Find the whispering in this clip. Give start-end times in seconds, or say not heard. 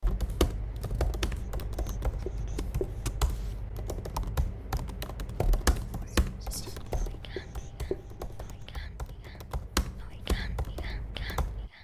5.8-11.7.